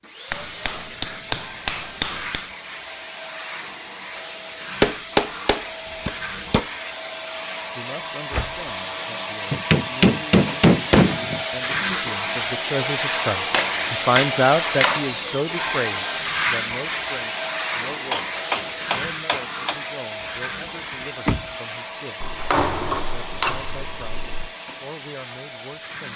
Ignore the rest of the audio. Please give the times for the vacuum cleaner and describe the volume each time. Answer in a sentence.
You can hear the vacuum cleaner from 0.0 to 26.1 s, getting louder then quieter.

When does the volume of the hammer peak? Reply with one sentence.
The volume of the hammer peaks at 11 seconds.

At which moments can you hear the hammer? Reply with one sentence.
The hammer can be heard from 0.3 to 2.5 s, from 4.8 to 6.7 s, from 9.5 to 11.4 s, from 13.5 to 15.2 s, from 18.1 to 19.8 s and from 22.2 to 24.5 s.